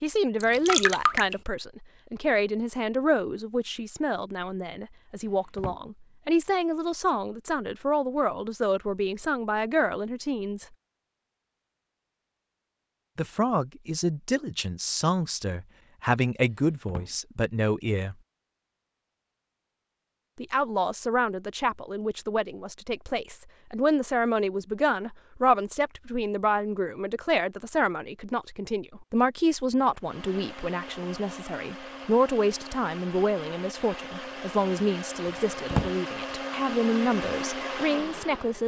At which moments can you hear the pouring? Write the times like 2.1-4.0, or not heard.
0.4-1.4.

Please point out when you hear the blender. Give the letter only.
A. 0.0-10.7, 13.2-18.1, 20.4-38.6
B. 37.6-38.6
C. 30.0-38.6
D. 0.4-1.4
C.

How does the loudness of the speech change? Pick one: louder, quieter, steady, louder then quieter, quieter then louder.
steady.